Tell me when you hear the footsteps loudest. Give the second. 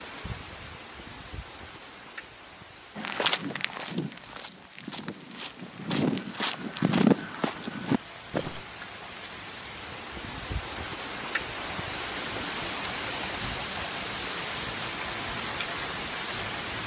7 s.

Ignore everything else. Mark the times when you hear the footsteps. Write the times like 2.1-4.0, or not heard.
3.0-8.6.